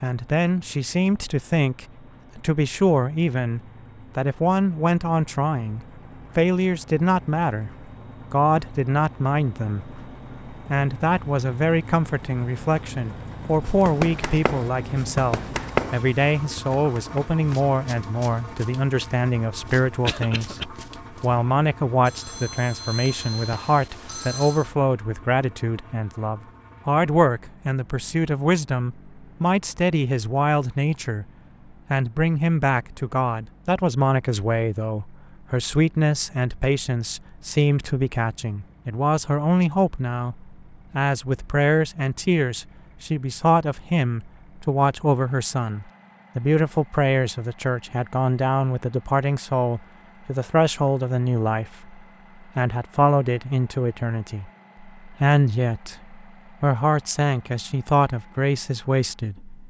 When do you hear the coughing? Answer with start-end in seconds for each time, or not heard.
20.1-20.6.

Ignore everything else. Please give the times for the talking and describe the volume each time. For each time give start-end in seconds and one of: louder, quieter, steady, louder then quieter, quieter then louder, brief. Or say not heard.
0.0-7.7 steady
8.3-31.2 steady
31.9-59.6 steady.